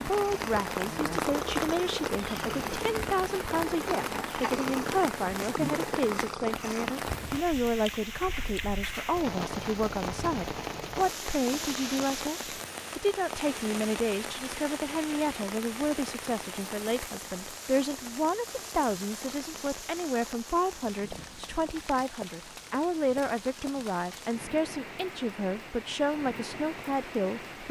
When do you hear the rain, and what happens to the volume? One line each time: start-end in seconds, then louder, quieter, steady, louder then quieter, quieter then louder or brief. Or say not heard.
0.0-27.6 quieter.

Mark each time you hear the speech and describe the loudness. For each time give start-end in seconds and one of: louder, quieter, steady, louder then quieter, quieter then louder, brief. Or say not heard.
0.1-27.6 steady.